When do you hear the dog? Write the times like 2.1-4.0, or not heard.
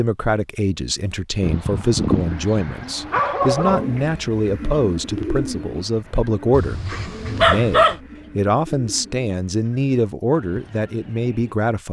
1.4-3.9, 6.5-8.0.